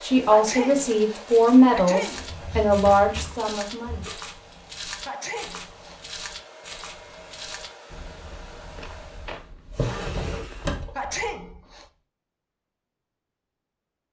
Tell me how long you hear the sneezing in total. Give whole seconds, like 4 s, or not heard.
4 s.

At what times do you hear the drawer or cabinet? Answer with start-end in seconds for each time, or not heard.
2.1-4.1, 9.7-10.9.